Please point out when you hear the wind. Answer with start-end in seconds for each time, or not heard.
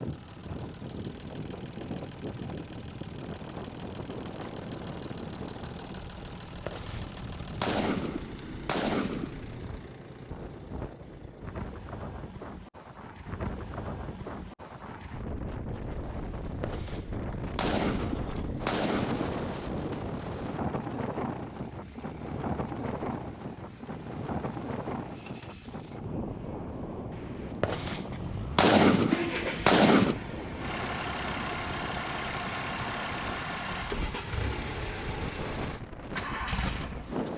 0.0-37.3.